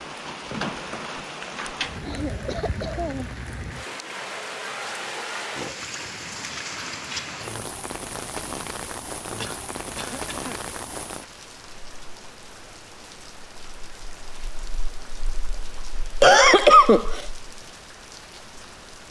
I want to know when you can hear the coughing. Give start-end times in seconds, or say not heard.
2.0-3.4, 9.3-10.7, 16.2-17.2.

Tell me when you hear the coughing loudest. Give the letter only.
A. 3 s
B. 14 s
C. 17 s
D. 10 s
C.